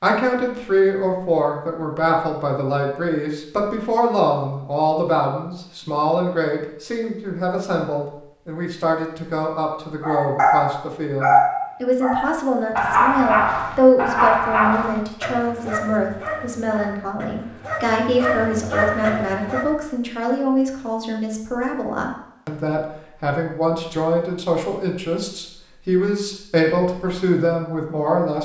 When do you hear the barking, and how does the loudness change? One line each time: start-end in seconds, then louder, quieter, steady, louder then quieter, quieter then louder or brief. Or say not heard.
10.0-19.7 quieter then louder.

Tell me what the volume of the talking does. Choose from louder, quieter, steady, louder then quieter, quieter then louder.
steady.